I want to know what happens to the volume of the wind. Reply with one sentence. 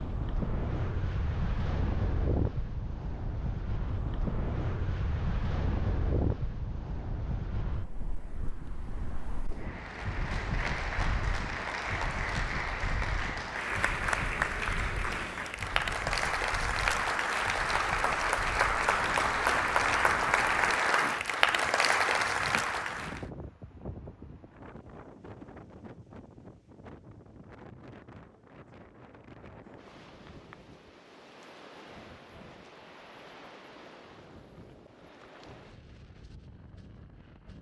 The volume of the wind goes down.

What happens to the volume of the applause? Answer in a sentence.
The volume of the applause goes up.